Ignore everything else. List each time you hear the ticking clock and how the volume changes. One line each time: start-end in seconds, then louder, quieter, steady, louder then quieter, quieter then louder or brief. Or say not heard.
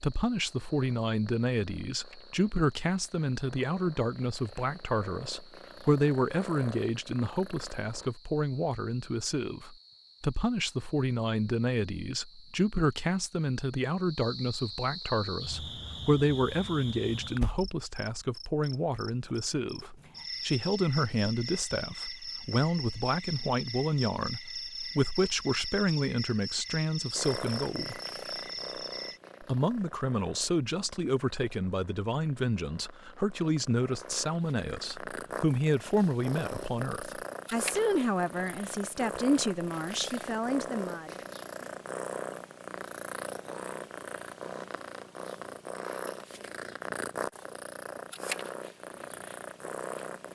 not heard.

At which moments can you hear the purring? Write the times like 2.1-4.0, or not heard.
0.0-8.2, 27.1-50.2.